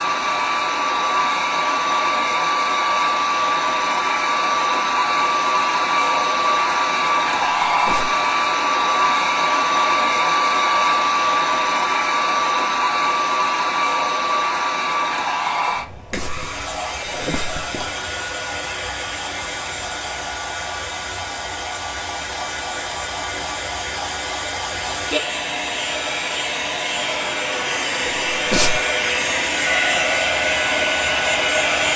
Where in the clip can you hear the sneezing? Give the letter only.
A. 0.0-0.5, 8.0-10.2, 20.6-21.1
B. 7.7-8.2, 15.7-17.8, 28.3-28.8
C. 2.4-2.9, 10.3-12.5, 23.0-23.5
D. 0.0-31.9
B.